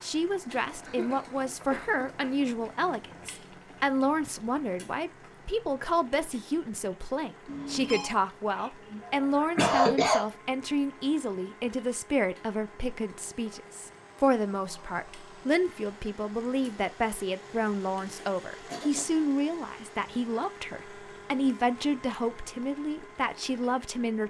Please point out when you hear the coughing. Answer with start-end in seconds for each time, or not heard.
0.8-2.4, 8.5-10.2, 18.6-19.2.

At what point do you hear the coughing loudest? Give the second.
10 s.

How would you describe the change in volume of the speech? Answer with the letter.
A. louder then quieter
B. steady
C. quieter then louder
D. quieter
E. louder
B.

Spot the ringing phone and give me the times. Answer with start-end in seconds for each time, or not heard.
7.5-8.1.